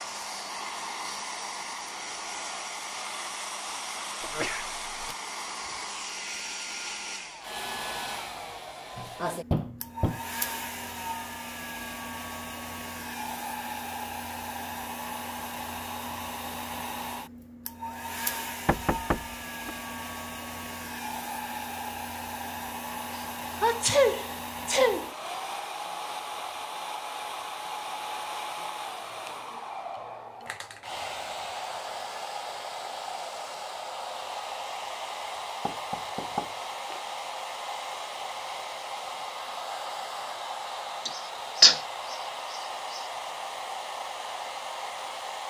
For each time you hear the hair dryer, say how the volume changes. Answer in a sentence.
The hair dryer can be heard from 0.0 to 45.4 s, at a steady volume.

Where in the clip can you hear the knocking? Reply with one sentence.
You can hear the knocking from 8.9 to 10.2 s, from 18.6 to 19.7 s and from 35.6 to 37.0 s.